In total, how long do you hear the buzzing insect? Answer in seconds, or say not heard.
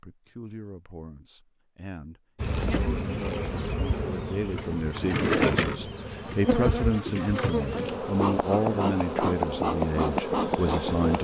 9 s.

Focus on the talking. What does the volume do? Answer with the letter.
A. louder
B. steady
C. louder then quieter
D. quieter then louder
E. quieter
A.